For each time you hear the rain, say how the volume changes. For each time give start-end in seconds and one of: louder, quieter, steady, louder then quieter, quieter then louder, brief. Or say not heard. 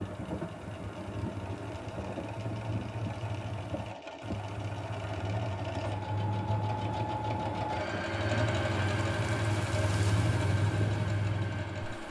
0.0-12.0 louder.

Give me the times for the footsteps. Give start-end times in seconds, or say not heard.
not heard.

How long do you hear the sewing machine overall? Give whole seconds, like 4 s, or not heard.
12 s.